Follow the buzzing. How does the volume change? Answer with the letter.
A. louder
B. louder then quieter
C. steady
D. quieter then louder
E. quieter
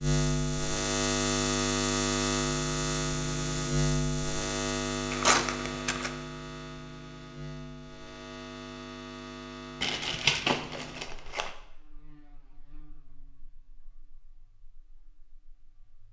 E.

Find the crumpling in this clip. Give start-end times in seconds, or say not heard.
5.1-6.1, 9.8-11.5.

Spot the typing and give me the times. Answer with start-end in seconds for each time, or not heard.
not heard.